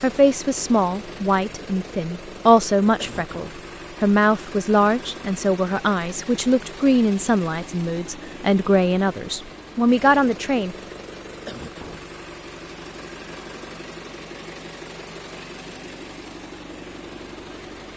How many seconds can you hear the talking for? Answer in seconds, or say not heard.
11 s.